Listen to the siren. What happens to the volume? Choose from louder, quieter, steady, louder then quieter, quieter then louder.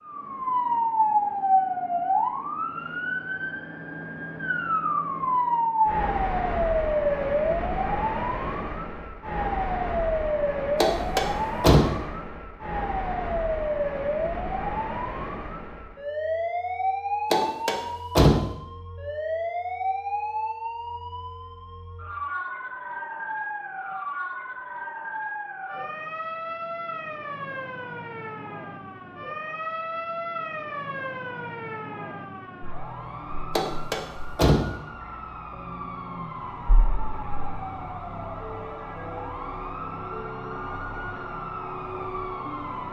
quieter.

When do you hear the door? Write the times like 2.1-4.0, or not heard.
10.8-11.8, 17.3-18.4, 33.5-34.6.